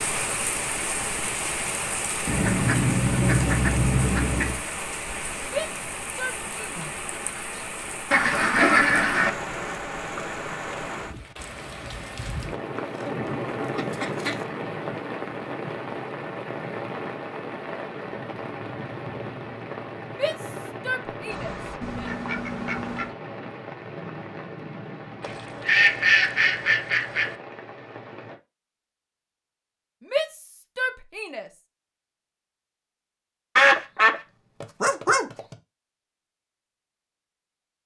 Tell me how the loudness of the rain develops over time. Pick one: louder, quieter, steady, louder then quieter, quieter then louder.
quieter.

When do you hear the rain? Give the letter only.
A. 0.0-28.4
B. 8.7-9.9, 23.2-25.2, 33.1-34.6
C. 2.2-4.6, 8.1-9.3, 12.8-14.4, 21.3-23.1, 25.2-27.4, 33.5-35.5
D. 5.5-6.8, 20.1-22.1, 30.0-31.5
A.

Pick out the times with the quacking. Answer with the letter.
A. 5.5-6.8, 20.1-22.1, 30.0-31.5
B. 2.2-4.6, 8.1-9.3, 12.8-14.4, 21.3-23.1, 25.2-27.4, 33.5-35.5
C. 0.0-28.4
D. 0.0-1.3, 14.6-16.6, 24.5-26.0
B.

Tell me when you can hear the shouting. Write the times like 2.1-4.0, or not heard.
5.5-6.8, 20.1-22.1, 30.0-31.5.